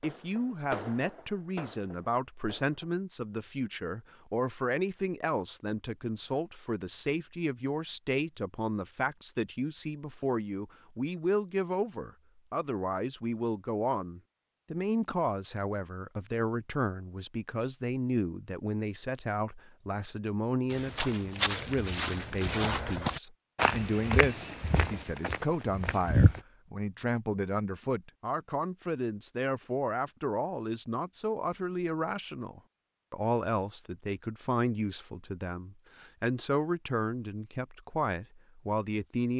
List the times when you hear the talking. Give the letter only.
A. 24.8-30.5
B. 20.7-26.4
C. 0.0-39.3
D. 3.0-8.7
C.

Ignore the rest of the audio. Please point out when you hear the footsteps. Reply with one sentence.
You can hear the footsteps from 20.7 to 26.4 s.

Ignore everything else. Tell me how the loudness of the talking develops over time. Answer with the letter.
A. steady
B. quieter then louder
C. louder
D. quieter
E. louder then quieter
A.